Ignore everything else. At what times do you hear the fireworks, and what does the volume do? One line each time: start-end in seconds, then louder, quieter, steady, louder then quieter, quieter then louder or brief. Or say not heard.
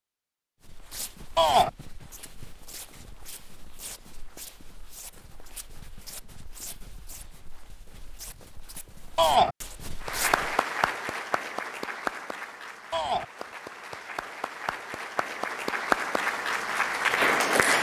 not heard.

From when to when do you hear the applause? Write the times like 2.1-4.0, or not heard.
10.0-17.7.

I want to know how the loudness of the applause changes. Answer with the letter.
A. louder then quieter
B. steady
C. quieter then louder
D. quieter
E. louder
C.